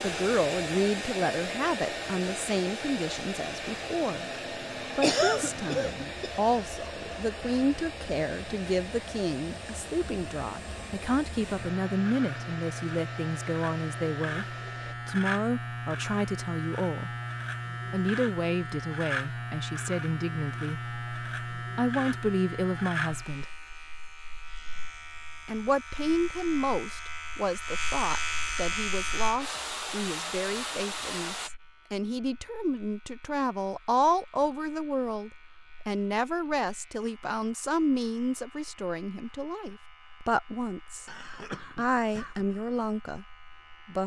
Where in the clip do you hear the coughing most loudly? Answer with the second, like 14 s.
5 s.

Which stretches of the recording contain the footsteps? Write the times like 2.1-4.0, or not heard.
not heard.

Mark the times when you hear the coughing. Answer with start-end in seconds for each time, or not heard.
5.0-6.4, 41.0-42.5.